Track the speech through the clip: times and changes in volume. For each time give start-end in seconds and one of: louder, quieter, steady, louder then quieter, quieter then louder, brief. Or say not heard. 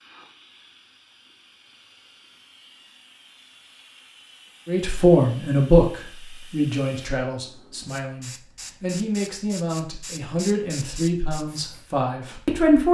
4.7-12.8 quieter.